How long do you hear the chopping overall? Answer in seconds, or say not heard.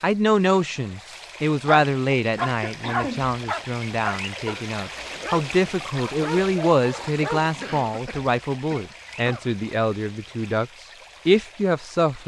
not heard.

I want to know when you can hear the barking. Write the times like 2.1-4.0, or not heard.
1.6-7.7.